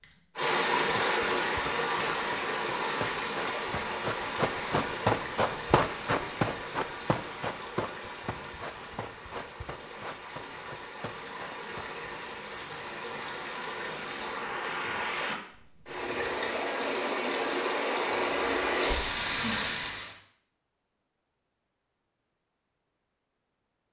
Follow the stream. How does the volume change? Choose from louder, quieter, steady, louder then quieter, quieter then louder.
quieter then louder.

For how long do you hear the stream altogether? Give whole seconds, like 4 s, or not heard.
20 s.